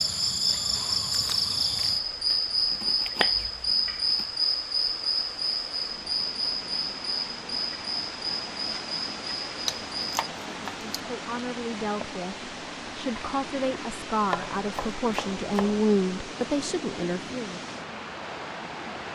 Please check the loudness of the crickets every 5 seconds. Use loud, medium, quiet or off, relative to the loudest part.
loud, medium, off, off.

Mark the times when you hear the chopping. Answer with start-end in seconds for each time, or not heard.
2.3-4.2, 9.7-10.9, 14.3-15.8.